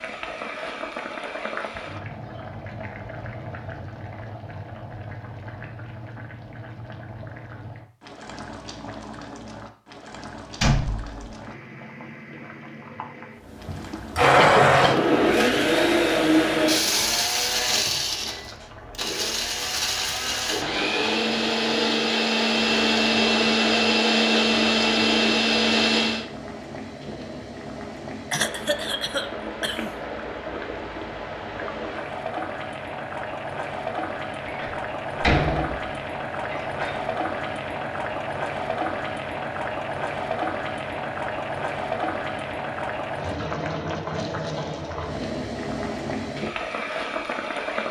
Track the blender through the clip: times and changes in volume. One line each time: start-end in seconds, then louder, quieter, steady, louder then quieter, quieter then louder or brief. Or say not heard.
13.4-26.2 quieter then louder.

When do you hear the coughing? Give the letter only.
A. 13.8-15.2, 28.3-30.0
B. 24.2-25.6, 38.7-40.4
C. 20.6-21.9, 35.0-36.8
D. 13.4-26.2
A.